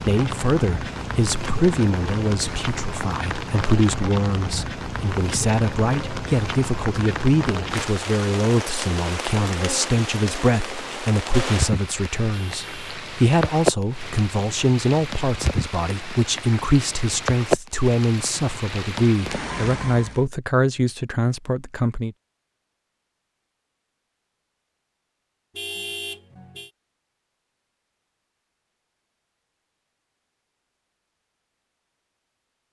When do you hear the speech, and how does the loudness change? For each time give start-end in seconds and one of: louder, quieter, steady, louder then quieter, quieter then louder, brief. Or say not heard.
0.0-22.1 steady.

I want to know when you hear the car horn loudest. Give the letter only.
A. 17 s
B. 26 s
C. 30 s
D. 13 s
B.